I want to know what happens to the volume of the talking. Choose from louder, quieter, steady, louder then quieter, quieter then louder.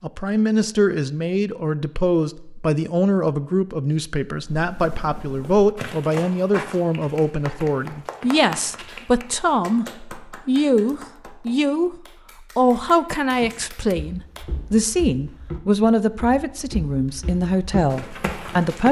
steady.